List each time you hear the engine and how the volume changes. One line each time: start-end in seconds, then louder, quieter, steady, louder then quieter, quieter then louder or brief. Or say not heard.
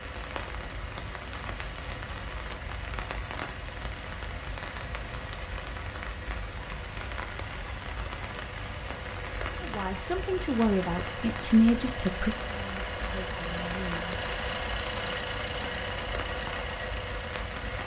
0.0-17.8 louder.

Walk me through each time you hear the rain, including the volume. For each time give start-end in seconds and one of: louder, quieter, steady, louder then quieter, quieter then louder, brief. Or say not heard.
0.0-17.8 steady.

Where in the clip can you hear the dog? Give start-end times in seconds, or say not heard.
not heard.